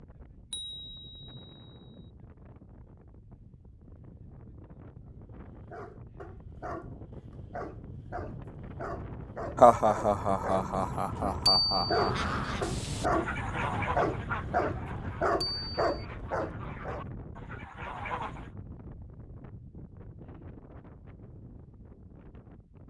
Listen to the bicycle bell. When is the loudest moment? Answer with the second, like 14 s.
12 s.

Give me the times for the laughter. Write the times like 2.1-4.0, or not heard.
9.6-12.1.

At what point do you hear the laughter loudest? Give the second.
10 s.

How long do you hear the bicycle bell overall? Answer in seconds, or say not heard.
3 s.